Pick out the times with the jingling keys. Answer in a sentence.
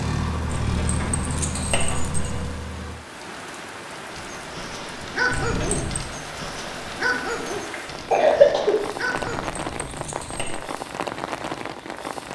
You can hear the jingling keys from 0.5 to 2.5 s, from 5.3 to 6.1 s and from 9.2 to 10.7 s.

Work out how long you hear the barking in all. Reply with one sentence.
You can hear the barking for 5 seconds altogether.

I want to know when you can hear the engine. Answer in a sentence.
You can hear the engine from 0.0 to 3.0 s.